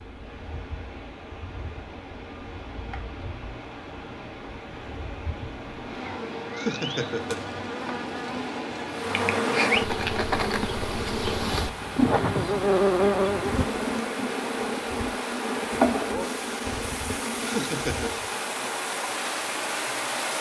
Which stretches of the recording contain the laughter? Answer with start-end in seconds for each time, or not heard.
6.5-7.4, 17.4-18.1.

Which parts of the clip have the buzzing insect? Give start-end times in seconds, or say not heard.
0.0-18.3.